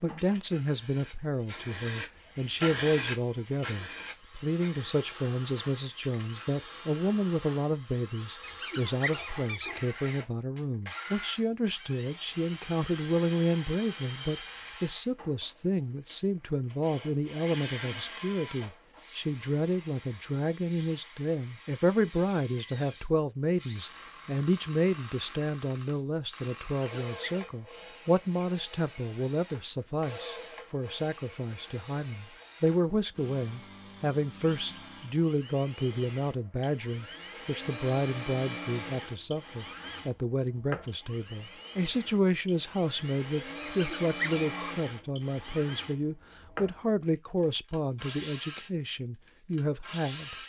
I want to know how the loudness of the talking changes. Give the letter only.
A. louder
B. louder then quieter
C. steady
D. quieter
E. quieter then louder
C.